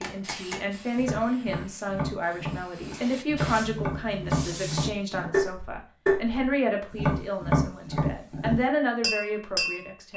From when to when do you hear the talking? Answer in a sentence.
The talking can be heard from 0.0 to 10.1 s.